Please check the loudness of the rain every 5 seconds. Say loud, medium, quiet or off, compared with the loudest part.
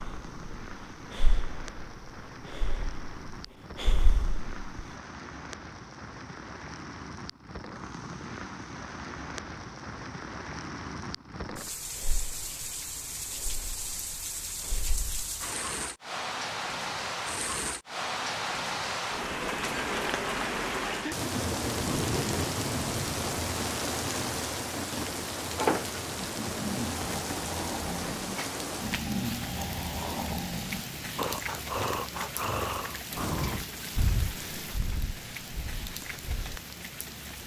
quiet, medium, medium, loud, loud, loud, medium, medium.